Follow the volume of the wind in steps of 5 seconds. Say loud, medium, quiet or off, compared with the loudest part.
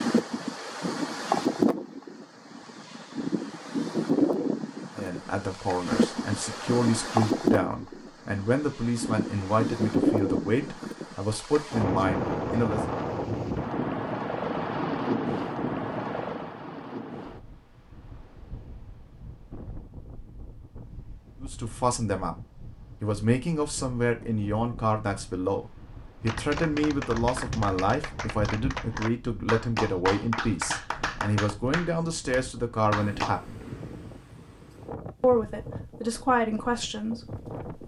loud, loud, loud, medium, quiet, quiet, quiet, quiet.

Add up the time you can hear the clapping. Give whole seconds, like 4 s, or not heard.
7 s.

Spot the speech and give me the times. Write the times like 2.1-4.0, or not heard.
5.0-12.8, 21.4-22.4, 23.0-33.6, 35.2-37.8.